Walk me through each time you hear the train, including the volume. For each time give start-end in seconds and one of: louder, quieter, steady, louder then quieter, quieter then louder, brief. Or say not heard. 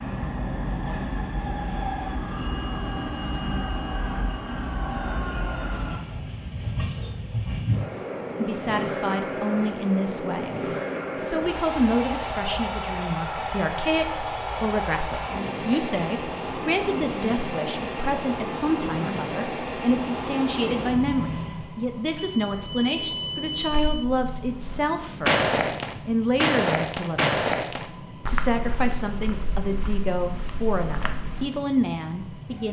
0.0-32.6 quieter.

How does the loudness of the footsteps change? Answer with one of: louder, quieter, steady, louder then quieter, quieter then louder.
quieter.